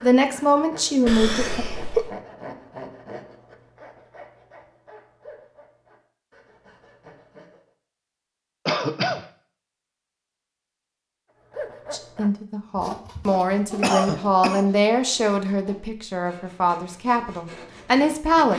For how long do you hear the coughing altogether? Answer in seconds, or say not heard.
3 s.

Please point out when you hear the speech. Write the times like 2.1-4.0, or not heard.
0.0-1.6, 11.9-18.5.